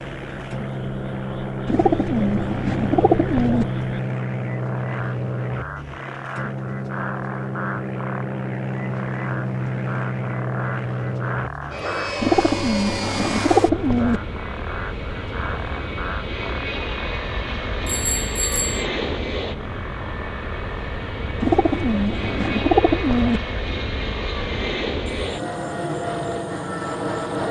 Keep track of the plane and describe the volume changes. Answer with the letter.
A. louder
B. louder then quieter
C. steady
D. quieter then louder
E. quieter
C.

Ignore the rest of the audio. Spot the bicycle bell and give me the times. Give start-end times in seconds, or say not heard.
17.9-18.9.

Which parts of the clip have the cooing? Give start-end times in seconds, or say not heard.
1.6-3.6, 12.2-14.2, 21.4-23.4.